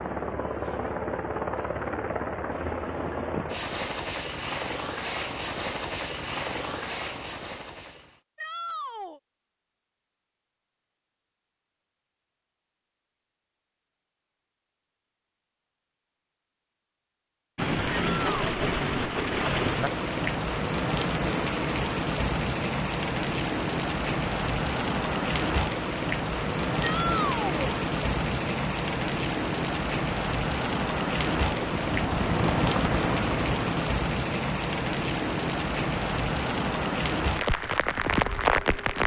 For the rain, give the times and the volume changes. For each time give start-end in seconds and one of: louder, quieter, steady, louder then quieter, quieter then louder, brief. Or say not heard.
17.6-39.0 steady.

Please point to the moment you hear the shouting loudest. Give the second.
27 s.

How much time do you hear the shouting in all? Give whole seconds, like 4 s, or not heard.
2 s.